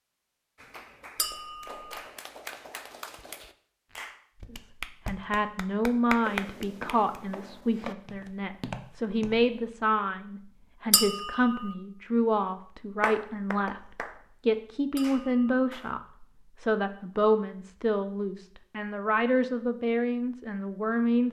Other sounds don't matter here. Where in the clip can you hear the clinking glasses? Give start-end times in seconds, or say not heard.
1.1-1.9, 10.9-11.7, 14.9-15.5.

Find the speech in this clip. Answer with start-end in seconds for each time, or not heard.
4.5-21.2.